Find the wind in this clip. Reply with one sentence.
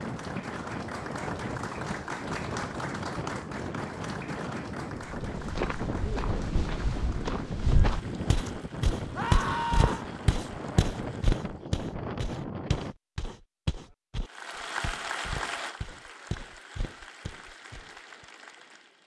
The wind can be heard from 0.0 to 12.9 s.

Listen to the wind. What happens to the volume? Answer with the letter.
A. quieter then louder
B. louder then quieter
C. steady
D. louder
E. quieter
C.